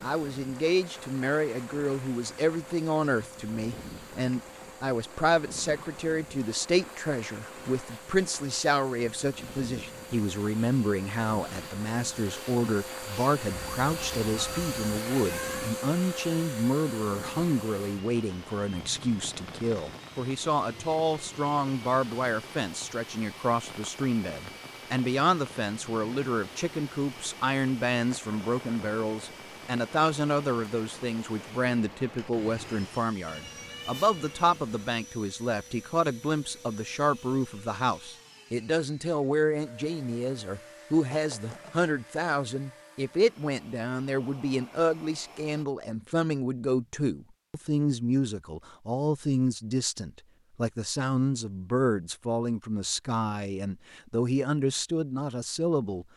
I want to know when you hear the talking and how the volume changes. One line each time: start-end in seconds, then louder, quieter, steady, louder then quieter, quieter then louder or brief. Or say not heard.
0.0-56.0 steady.